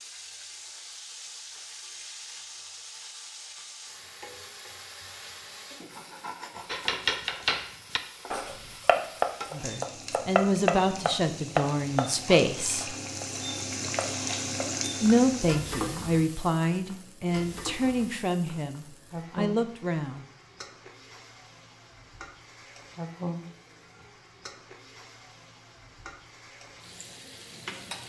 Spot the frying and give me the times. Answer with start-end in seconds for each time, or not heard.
0.0-28.0.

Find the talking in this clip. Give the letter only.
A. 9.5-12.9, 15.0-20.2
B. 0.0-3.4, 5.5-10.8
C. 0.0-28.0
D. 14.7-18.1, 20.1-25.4
A.